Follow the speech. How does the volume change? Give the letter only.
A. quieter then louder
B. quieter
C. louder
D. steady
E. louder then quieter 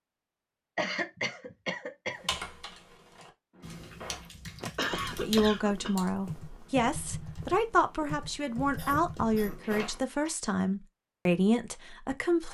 D.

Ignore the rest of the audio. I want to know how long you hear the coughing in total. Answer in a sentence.
You can hear the coughing for 4 seconds altogether.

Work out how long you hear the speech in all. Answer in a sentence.
The speech can be heard for 7 seconds in total.